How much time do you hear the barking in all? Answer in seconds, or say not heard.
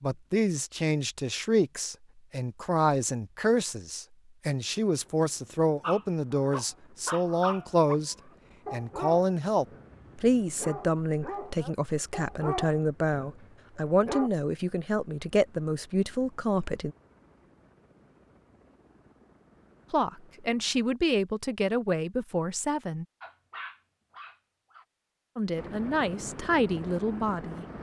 10 s.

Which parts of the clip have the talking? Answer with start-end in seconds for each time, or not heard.
0.0-16.9, 19.9-23.1, 25.4-27.6.